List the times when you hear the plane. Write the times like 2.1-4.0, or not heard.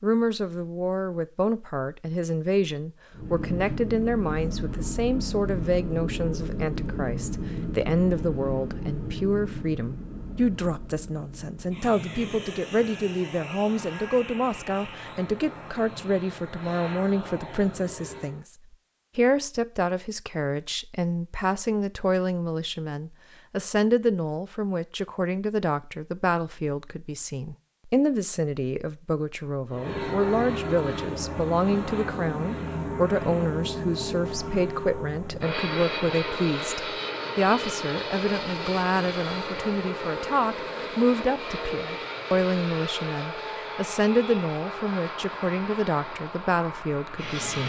3.1-18.4, 29.7-47.6.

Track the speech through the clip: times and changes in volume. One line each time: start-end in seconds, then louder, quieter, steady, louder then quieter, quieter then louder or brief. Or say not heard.
0.0-18.4 steady
19.1-47.6 steady.